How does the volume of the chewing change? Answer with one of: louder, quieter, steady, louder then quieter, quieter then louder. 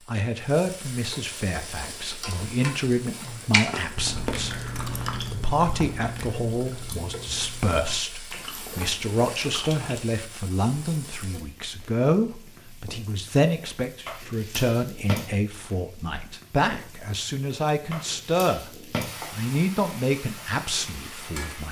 quieter.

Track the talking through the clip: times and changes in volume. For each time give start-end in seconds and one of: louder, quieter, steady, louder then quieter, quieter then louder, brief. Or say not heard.
0.1-18.7 steady
19.3-21.6 brief.